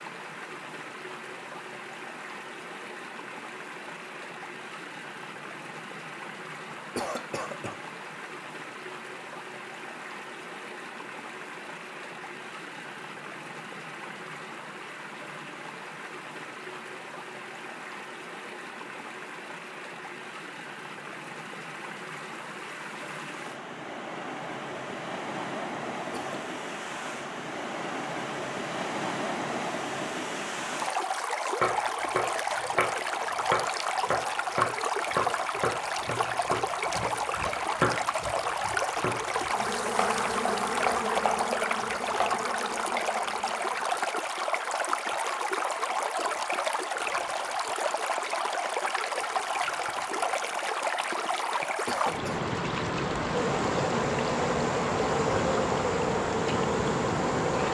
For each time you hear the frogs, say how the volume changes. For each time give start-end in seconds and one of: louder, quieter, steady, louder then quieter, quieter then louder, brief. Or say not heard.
not heard.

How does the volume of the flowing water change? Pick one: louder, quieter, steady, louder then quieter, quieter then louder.
louder.